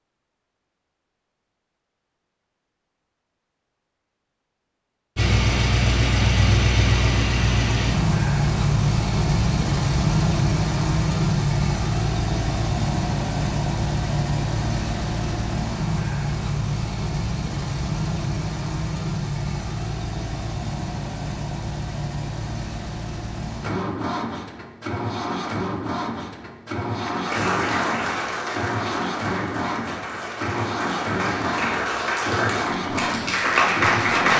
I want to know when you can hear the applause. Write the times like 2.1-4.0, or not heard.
27.1-34.3.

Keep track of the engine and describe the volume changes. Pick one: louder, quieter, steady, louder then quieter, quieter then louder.
quieter.